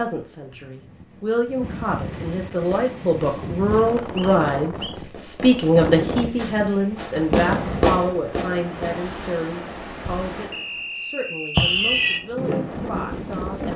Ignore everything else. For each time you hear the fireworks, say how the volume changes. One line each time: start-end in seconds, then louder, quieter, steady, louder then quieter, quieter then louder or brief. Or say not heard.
2.5-9.0 louder
11.6-13.4 brief.